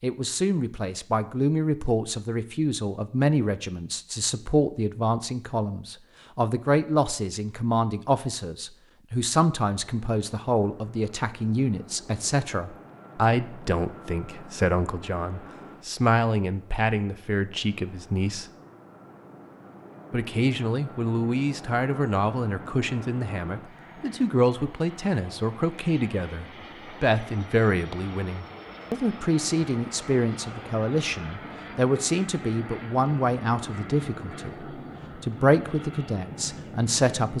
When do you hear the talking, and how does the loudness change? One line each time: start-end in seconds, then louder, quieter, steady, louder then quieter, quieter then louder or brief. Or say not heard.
0.0-18.4 steady
20.1-37.3 steady.